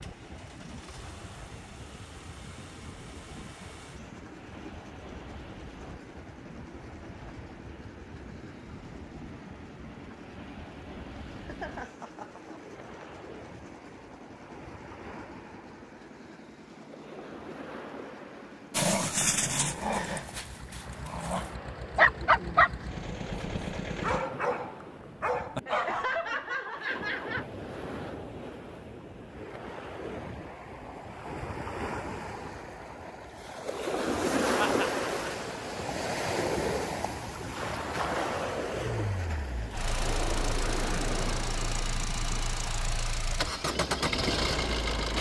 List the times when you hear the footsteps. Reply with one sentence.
The footsteps can't be heard in this clip.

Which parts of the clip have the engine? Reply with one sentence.
You can hear the engine from 0.0 to 24.2 s and from 38.6 to 45.1 s.